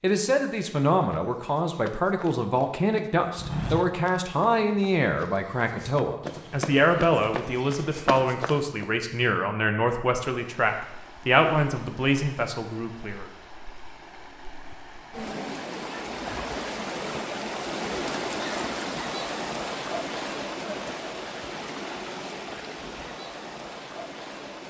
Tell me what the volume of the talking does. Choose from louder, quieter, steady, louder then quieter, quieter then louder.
steady.